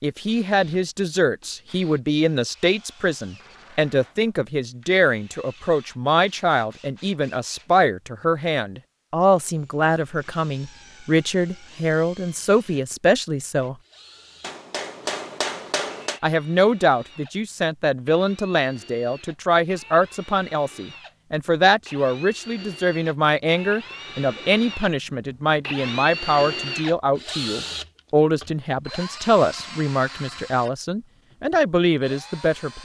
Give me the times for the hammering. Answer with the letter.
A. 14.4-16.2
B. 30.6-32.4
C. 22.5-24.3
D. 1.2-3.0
A.